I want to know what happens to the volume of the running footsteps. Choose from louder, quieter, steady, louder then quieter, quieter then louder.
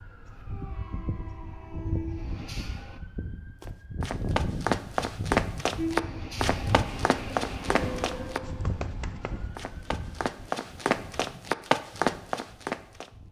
quieter then louder.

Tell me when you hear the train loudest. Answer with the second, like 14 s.
6 s.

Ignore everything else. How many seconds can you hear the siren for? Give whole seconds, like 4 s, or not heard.
13 s.